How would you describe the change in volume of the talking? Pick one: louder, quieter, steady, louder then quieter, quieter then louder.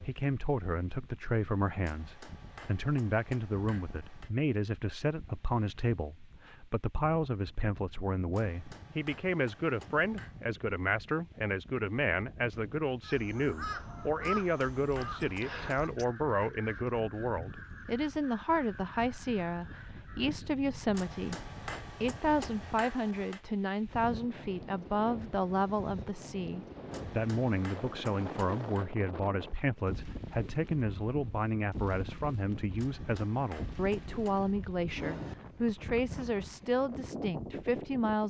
steady.